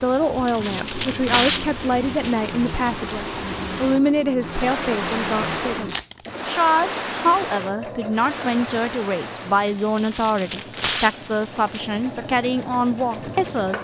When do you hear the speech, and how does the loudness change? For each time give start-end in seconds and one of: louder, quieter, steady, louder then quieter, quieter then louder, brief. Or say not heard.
0.0-13.7 steady.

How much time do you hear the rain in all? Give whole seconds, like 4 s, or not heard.
14 s.